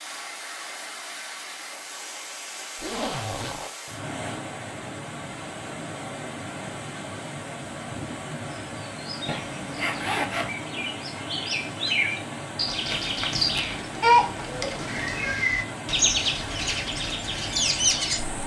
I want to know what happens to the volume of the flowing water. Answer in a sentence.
The loudness of the flowing water stays about the same.